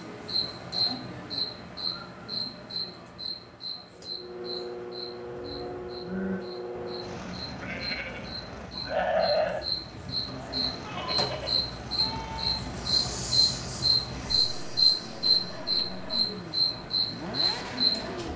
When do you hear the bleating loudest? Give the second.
9 s.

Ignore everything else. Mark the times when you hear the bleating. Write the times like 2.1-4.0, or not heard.
5.2-12.6.